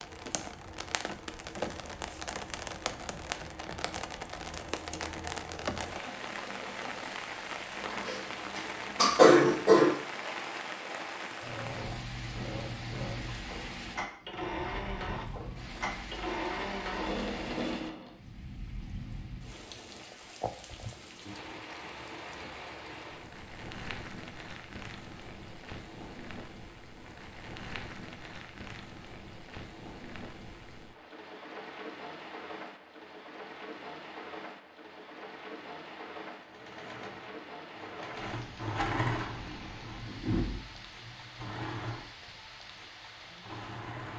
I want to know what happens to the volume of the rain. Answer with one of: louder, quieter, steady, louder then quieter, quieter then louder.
quieter.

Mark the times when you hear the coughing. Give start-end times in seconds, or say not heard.
8.1-9.9.